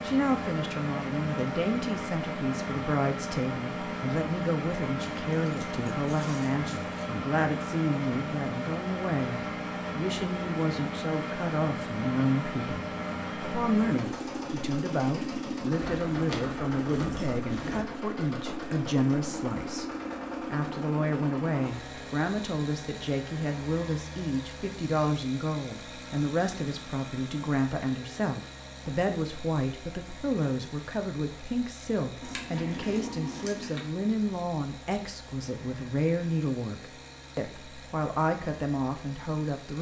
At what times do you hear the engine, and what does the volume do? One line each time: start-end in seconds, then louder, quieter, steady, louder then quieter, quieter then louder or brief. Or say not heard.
0.0-39.7 quieter.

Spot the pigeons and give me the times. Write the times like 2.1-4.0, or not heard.
not heard.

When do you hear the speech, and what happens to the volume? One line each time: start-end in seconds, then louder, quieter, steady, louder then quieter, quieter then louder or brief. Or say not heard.
0.0-39.7 steady.